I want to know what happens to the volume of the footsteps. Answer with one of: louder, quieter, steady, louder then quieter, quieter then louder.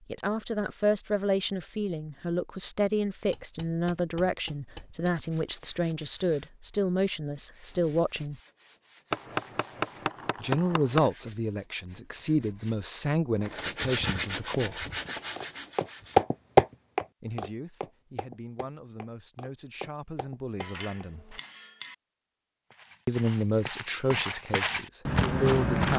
quieter then louder.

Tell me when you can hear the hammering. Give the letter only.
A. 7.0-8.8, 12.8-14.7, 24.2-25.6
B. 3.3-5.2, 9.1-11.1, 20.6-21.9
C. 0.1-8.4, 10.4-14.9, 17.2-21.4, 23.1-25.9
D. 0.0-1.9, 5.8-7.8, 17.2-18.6
B.